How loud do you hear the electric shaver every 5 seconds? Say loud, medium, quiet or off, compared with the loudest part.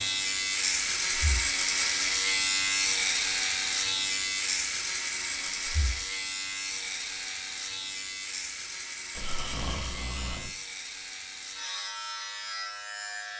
loud, medium, medium.